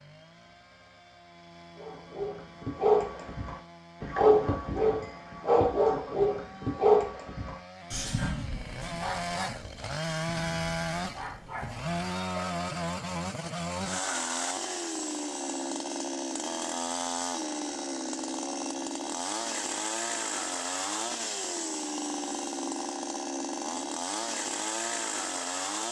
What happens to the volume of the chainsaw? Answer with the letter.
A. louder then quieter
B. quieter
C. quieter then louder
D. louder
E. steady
D.